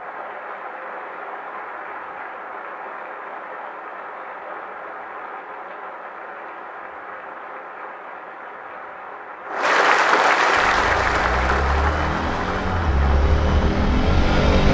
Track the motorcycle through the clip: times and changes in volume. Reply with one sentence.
The motorcycle can be heard from 10.6 to 14.6 s, getting louder.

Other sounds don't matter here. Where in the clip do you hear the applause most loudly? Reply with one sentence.
The volume of the applause peaks at 10 seconds.